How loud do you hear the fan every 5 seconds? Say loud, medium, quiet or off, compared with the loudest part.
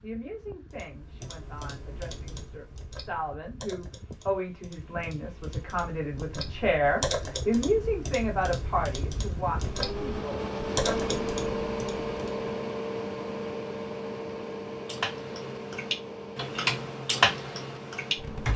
quiet, medium, loud, medium.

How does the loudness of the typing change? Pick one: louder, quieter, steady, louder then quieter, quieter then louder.
louder.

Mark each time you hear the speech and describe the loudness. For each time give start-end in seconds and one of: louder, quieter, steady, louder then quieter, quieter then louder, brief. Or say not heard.
0.0-11.1 louder then quieter.